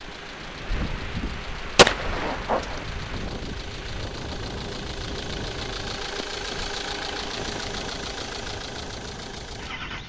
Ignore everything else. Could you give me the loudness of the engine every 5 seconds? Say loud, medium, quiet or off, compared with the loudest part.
medium, loud.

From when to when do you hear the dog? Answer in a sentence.
You can't hear the dog here.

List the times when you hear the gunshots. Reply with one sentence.
You can hear the gunshots from 1.8 to 2.9 s.